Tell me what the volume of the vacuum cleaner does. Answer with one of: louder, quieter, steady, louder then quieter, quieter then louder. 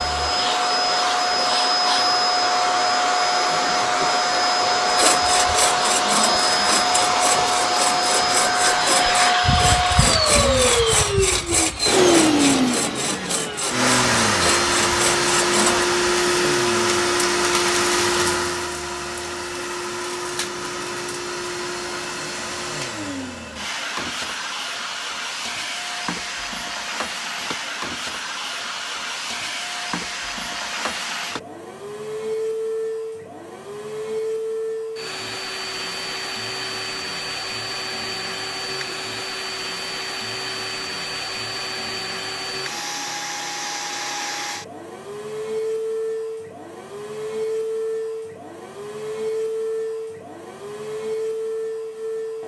quieter.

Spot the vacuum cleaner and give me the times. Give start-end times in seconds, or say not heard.
0.0-52.4.